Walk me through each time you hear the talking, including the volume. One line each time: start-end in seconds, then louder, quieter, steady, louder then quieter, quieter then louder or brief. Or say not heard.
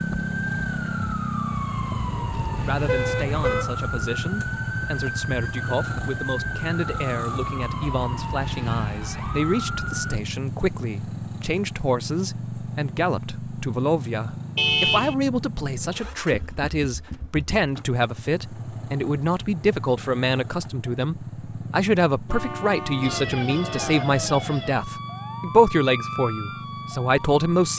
2.6-27.7 louder.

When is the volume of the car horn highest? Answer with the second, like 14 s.
15 s.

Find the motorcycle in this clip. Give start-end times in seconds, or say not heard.
0.0-27.7.